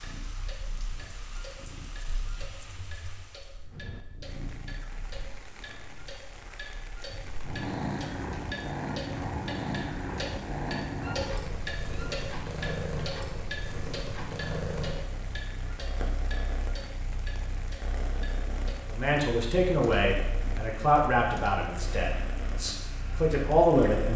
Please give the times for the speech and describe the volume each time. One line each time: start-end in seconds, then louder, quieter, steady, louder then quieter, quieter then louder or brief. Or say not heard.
18.9-24.1 quieter then louder.